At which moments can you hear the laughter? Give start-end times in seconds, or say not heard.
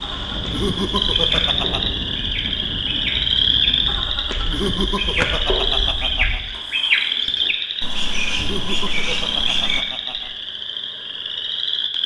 0.5-1.8, 4.5-6.4, 8.3-10.3.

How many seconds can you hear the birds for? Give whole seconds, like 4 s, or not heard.
10 s.